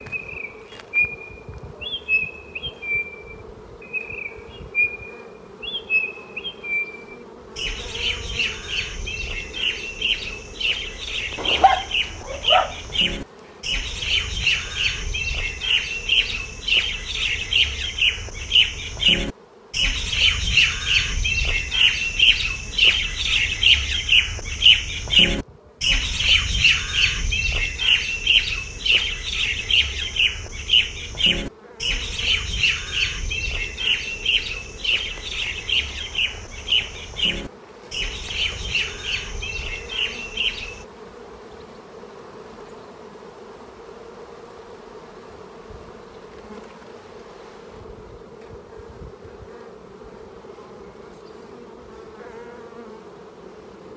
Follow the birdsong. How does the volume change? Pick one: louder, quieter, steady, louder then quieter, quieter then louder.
louder then quieter.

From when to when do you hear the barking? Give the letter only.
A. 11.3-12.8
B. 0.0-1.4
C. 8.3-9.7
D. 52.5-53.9
A.